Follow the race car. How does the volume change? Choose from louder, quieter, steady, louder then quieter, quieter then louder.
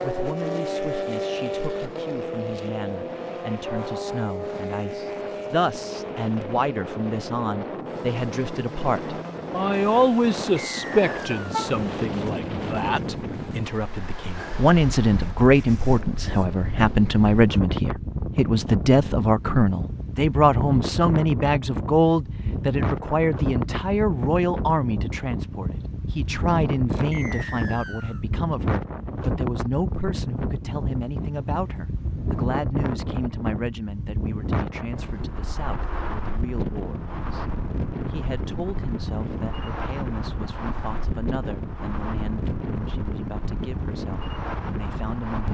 quieter.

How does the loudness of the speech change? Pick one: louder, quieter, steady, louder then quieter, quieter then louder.
louder then quieter.